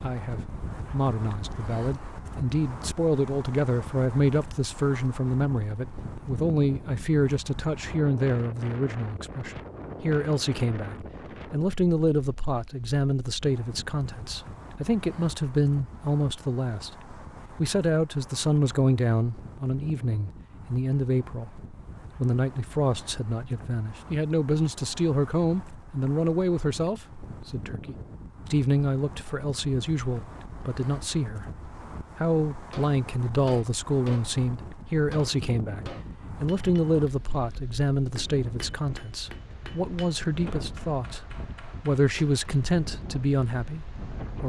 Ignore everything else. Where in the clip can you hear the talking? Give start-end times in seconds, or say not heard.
0.0-21.5, 22.1-31.5, 32.1-44.4.